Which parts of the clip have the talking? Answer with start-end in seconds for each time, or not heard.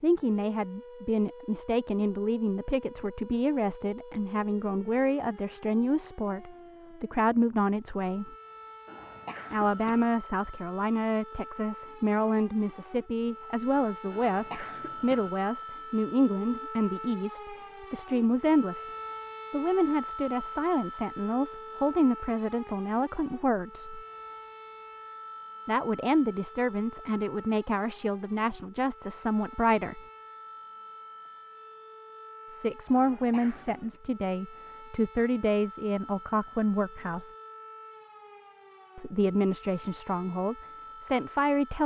0.0-8.3, 9.5-18.9, 19.5-24.0, 25.6-30.0, 32.5-37.3, 39.0-41.8.